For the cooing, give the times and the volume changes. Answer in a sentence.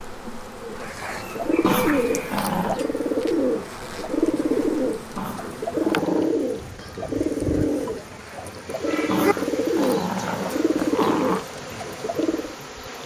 The cooing can be heard from 0.6 to 12.6 s, at a steady volume.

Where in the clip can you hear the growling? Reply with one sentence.
You can hear the growling from 1.6 to 2.9 s, from 5.2 to 6.3 s and from 9.1 to 11.4 s.